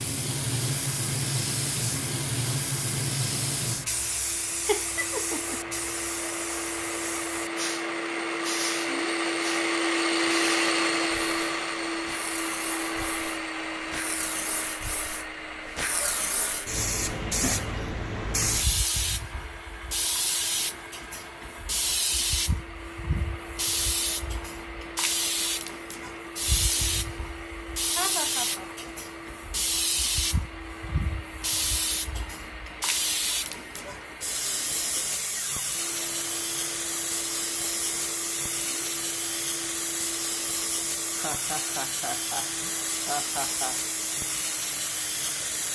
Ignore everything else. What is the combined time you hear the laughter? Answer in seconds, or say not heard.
4 s.